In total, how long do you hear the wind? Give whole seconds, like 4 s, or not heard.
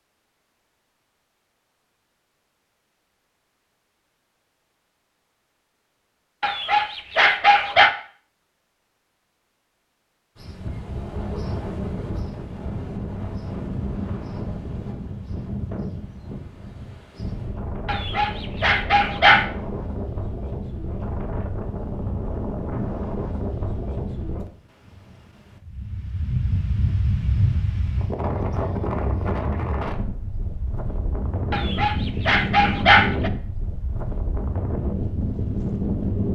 26 s.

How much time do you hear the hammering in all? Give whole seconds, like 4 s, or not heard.
not heard.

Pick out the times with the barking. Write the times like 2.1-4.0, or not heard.
6.4-8.0, 17.9-19.4, 31.5-33.3.